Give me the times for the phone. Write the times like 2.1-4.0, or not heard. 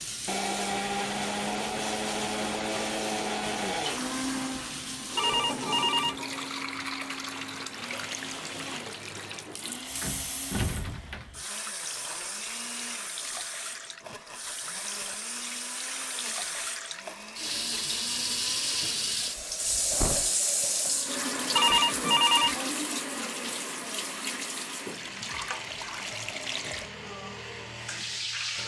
5.2-6.2, 21.6-22.6.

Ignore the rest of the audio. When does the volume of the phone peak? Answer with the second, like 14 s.
22 s.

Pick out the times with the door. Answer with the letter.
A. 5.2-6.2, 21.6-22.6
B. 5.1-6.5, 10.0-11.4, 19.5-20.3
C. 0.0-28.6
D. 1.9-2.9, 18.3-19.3
B.